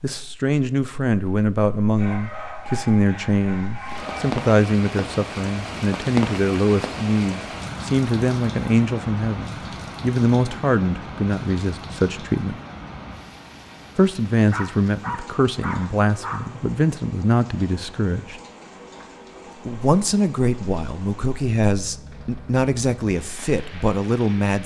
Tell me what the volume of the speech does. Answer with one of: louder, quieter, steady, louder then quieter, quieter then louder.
steady.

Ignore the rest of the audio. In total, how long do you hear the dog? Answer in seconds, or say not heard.
4 s.